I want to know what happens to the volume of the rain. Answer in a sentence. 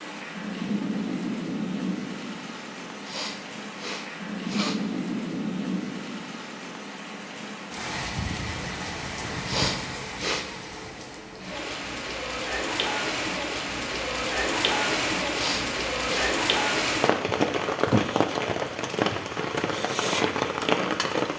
The volume of the rain goes up.